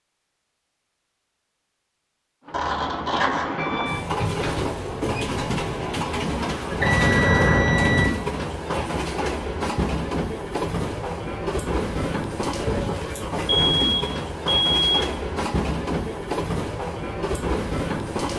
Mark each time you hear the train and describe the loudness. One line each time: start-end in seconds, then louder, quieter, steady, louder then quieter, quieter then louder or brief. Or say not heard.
2.5-18.3 steady.